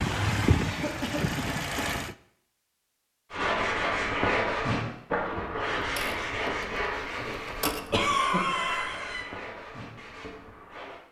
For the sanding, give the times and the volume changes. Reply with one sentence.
You can hear the sanding from 3.3 to 11.0 s, getting quieter.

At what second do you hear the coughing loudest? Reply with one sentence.
The loudest moment of the coughing is at 8 seconds.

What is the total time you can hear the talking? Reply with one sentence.
You can't hear the talking here.